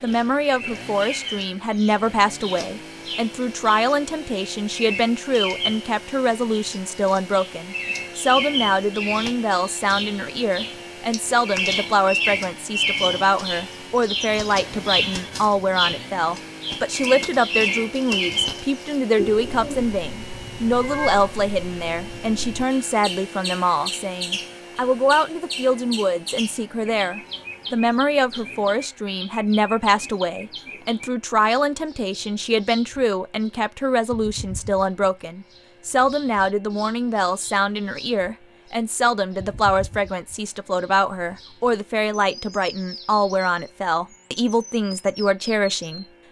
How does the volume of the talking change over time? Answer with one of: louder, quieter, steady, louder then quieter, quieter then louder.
steady.